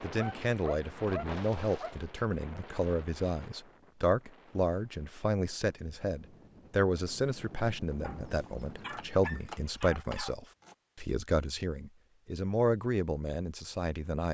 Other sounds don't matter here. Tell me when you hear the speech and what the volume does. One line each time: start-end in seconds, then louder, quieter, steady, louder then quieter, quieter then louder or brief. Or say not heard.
0.0-14.2 steady.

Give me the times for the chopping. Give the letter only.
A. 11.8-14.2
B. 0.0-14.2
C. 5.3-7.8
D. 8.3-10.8
D.